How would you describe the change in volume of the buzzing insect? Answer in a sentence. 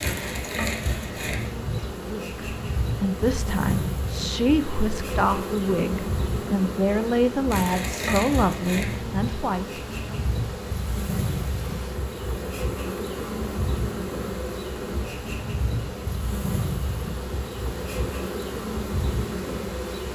The loudness of the buzzing insect stays about the same.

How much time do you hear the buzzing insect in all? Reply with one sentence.
You can hear the buzzing insect for 20 seconds altogether.